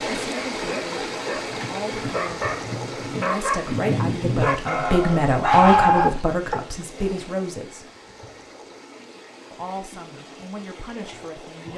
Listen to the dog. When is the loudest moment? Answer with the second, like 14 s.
6 s.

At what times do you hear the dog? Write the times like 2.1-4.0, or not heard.
0.2-6.5.